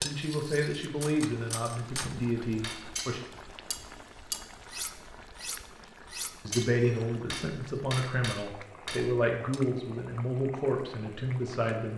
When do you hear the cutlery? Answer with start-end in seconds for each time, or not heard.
0.0-9.6.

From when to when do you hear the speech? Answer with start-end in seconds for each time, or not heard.
0.0-3.2, 6.5-11.9.